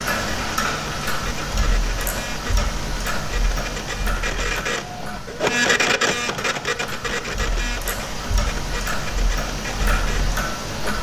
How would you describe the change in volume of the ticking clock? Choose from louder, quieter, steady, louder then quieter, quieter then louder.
quieter then louder.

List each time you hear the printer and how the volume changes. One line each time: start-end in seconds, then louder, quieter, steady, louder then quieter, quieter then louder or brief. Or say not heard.
0.0-10.9 louder then quieter.